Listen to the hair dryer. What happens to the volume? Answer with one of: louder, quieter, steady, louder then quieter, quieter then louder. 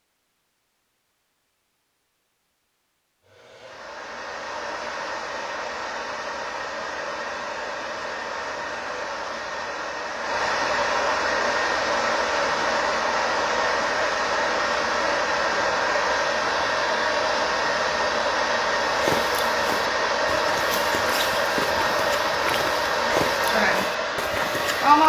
louder.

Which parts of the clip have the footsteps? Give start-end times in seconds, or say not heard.
18.9-24.9.